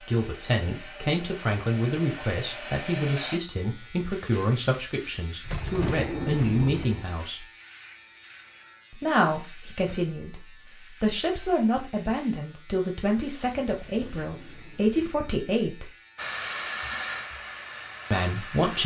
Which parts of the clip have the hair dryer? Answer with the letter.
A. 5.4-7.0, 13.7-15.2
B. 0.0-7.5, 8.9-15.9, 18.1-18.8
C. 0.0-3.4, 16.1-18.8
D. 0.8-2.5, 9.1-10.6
C.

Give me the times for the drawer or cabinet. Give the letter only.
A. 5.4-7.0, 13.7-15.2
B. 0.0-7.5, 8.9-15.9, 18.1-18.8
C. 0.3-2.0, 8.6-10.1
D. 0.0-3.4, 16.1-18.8
A.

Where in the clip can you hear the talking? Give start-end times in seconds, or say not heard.
0.0-7.5, 8.9-15.9, 18.1-18.8.